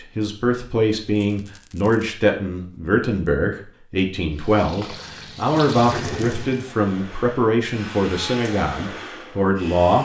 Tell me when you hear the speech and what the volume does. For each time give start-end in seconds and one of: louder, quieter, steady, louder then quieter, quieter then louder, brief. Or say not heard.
0.0-10.0 steady.